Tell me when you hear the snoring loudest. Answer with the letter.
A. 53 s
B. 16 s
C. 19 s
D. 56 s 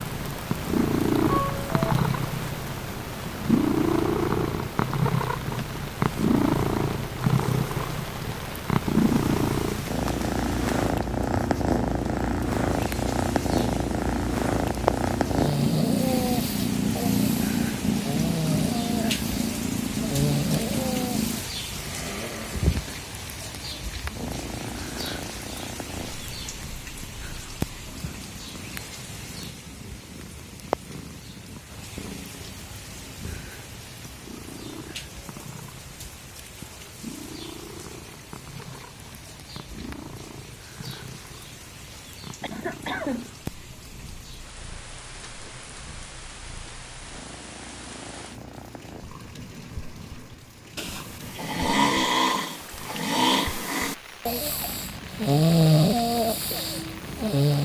D.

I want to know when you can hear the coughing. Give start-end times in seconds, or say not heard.
42.4-43.3.